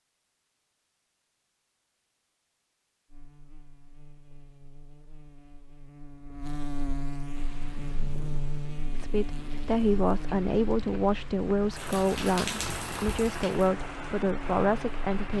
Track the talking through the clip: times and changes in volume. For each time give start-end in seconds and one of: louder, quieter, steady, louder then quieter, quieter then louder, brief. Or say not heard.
8.9-15.3 steady.